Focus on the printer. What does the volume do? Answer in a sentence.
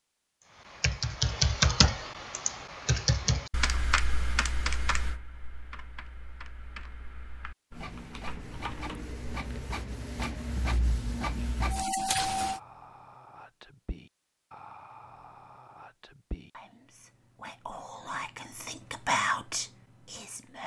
The volume of the printer goes up.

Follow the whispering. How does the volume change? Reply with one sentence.
The loudness of the whispering goes up.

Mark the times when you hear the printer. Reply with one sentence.
The printer can be heard from 7.7 to 12.6 s.